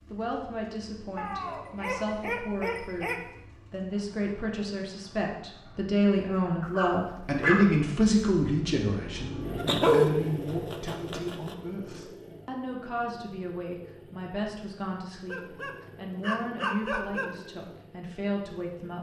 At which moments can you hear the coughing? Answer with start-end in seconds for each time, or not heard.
not heard.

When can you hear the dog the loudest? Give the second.
10 s.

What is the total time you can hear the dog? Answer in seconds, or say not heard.
7 s.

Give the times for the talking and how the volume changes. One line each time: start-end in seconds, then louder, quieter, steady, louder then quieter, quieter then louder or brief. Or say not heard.
0.1-18.9 louder then quieter.